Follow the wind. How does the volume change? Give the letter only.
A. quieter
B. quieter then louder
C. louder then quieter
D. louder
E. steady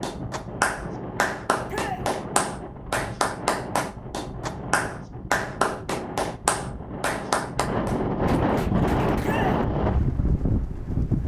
D.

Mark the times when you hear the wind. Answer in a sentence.
The wind can be heard from 0.0 to 11.2 s.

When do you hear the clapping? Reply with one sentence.
You can hear the clapping from 0.0 to 9.4 s.